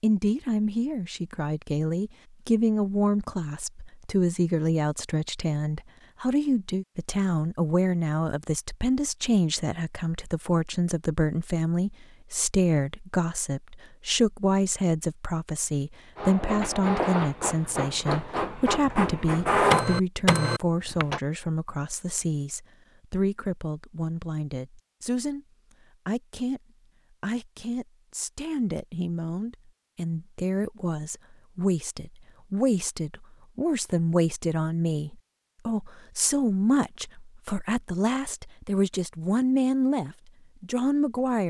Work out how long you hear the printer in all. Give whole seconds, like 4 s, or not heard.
5 s.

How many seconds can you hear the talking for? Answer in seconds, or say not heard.
41 s.